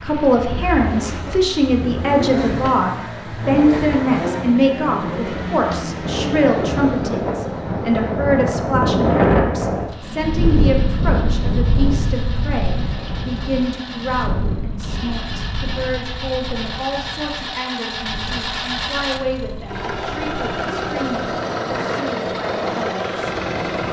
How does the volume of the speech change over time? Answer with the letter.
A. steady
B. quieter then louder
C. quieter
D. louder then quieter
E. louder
C.